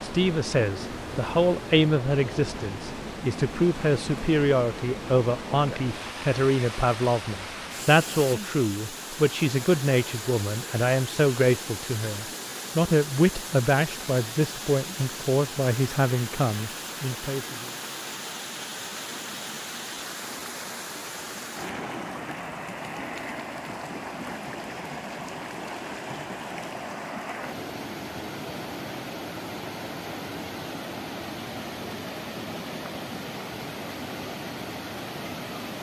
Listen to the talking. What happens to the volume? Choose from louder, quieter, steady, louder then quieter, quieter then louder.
steady.